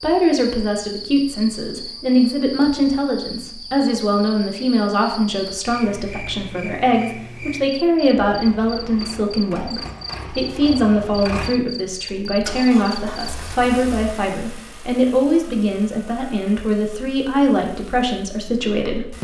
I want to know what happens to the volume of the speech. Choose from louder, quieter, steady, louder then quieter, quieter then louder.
steady.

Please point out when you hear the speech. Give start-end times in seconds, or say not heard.
0.0-19.1.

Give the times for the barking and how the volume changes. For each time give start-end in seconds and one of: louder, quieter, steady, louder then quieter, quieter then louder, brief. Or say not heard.
not heard.